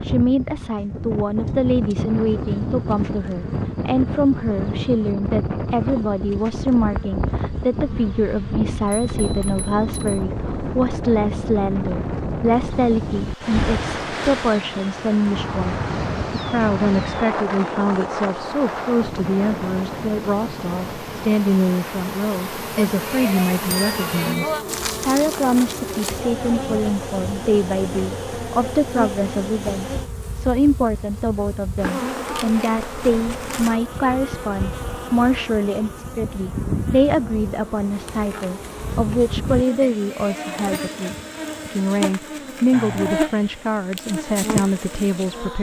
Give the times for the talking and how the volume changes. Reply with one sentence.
The talking can be heard from 0.0 to 45.5 s, at a steady volume.